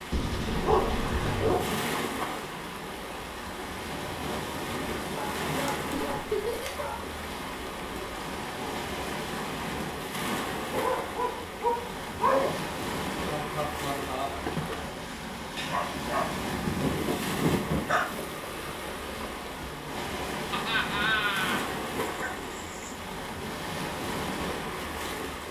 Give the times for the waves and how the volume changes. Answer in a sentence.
You can hear the waves from 0.0 to 25.4 s, at a steady volume.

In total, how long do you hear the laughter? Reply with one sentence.
You can hear the laughter for 3 seconds altogether.